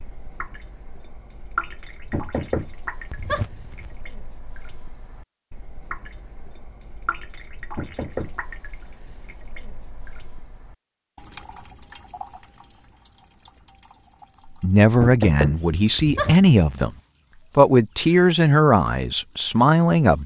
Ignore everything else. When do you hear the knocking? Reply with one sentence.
You can hear the knocking from 2.1 to 4.0 s, from 7.8 to 8.3 s and from 15.0 to 16.9 s.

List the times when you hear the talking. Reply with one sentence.
You can hear the talking from 14.6 to 16.9 s and from 17.6 to 20.2 s.